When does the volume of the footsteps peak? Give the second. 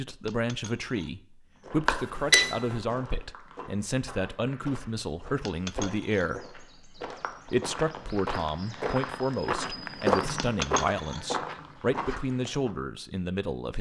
10 s.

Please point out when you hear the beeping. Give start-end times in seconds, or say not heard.
1.9-2.5.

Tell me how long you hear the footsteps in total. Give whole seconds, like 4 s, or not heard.
11 s.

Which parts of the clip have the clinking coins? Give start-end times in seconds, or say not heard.
0.2-1.1, 5.5-6.3, 10.3-11.2.